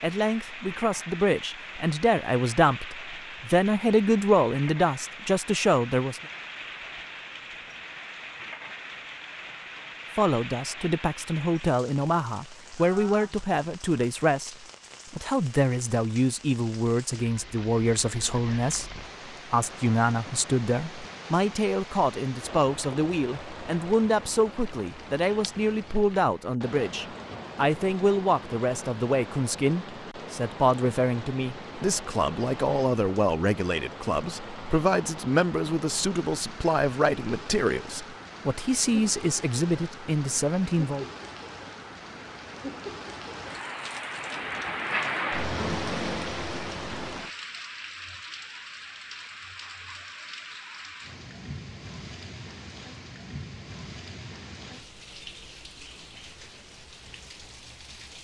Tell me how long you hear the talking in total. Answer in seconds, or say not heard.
37 s.